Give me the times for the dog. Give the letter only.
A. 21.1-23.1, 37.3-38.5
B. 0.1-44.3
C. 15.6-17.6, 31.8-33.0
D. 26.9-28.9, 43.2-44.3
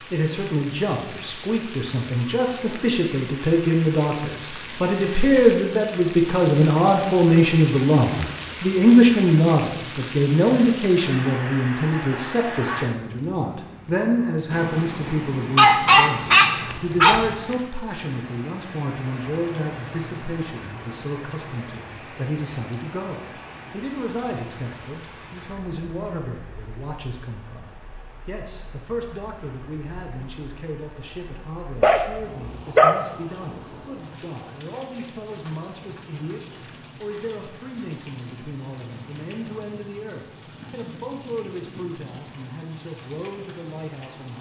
C.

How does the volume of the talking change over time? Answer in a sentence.
The volume of the talking goes down.